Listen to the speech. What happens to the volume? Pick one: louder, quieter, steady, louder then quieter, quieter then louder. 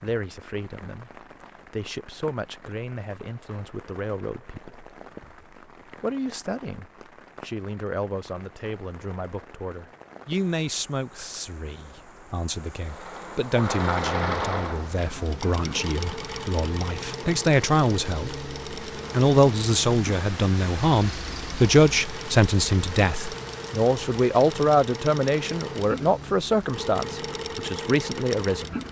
louder.